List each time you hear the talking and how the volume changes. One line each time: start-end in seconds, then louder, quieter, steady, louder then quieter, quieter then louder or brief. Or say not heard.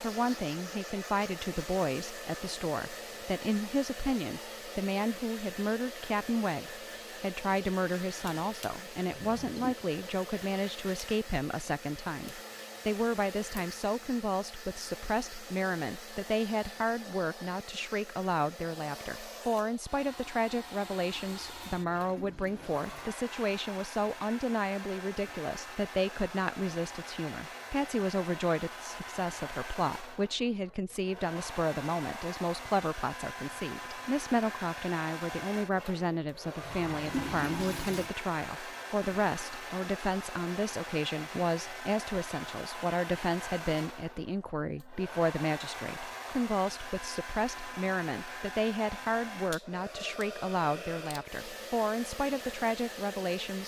0.0-53.6 steady.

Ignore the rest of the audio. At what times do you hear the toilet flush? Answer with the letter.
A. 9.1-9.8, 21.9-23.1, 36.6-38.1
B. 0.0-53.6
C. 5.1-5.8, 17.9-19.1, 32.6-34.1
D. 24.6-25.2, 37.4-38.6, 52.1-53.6
A.